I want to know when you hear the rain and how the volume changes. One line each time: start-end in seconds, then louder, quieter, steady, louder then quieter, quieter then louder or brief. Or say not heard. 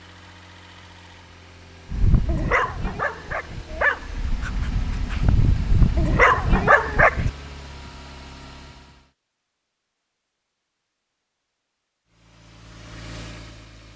not heard.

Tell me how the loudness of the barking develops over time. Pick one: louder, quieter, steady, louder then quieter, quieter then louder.
quieter then louder.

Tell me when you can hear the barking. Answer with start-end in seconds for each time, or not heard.
1.9-7.3.